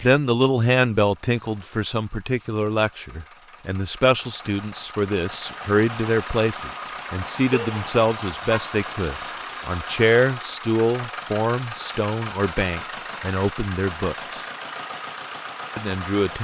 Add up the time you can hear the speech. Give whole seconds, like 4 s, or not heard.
15 s.